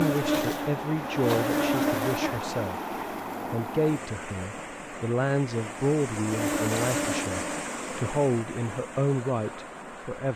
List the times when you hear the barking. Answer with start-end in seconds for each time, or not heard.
not heard.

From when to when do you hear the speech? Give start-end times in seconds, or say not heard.
0.0-2.8, 3.5-10.3.